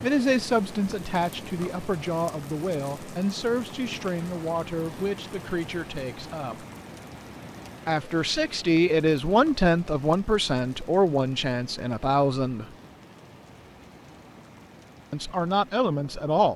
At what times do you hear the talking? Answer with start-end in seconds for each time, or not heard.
0.0-6.7, 7.8-12.7, 15.1-16.5.